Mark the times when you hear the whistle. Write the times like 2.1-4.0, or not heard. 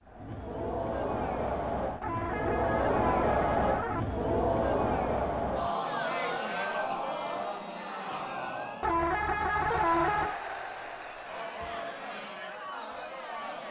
not heard.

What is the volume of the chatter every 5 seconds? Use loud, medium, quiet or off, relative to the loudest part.
loud, loud, medium.